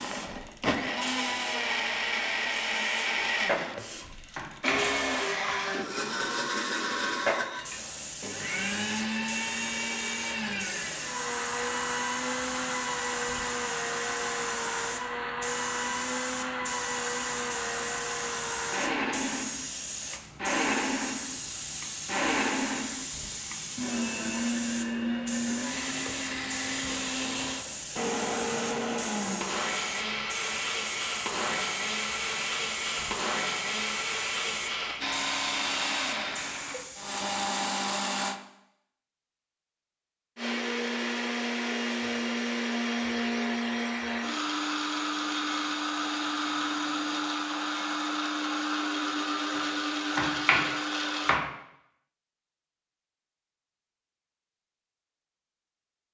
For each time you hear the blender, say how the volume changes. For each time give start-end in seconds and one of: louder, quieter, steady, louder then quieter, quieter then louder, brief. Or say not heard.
0.0-38.4 steady
40.4-51.4 steady.